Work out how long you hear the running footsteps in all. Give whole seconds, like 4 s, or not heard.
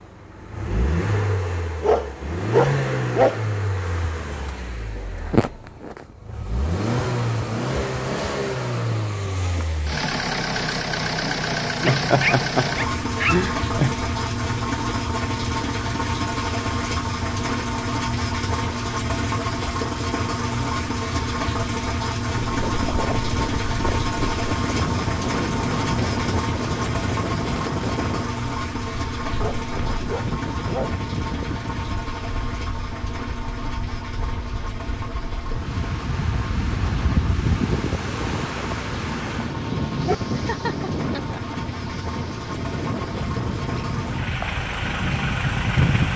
not heard.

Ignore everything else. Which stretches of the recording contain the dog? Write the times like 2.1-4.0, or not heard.
1.8-3.4, 11.8-13.4, 29.4-31.0, 38.9-40.1.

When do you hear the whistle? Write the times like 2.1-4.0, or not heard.
not heard.